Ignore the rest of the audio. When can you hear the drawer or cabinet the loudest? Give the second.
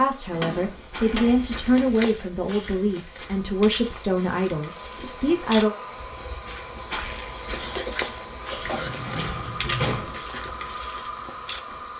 10 s.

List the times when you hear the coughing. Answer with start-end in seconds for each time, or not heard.
7.5-8.9.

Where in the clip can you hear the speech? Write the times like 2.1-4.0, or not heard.
0.0-5.8.